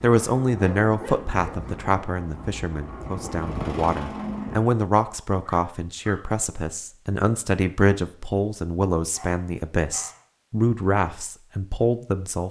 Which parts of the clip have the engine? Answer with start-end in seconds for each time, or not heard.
0.0-4.7.